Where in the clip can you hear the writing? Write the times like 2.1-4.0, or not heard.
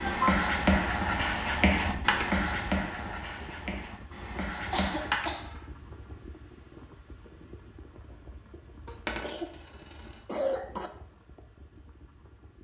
0.0-5.2.